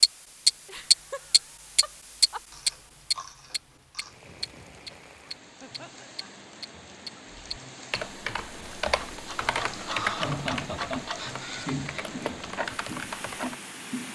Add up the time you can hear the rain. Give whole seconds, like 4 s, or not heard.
10 s.